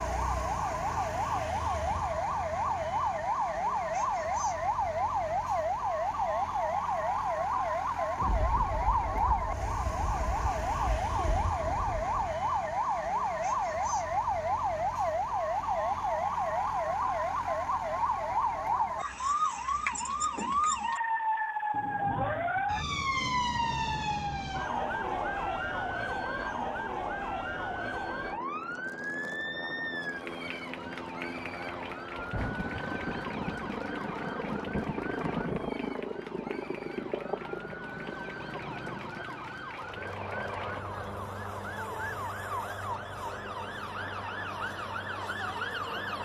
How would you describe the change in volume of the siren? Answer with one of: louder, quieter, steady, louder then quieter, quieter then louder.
quieter.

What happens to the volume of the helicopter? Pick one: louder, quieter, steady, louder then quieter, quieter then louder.
louder then quieter.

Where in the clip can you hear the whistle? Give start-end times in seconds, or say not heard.
not heard.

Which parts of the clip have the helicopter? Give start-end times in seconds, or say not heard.
23.6-46.2.